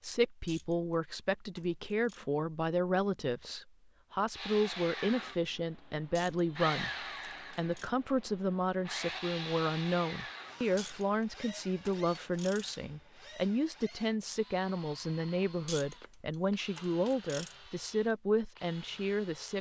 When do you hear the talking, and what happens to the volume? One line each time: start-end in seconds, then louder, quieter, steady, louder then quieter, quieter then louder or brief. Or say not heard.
0.0-19.5 steady.